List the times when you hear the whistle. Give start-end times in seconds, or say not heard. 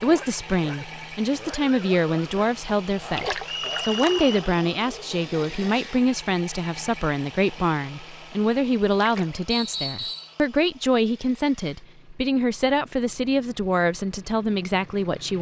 3.5-4.4, 9.5-10.3.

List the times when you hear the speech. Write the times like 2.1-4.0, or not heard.
0.0-15.3.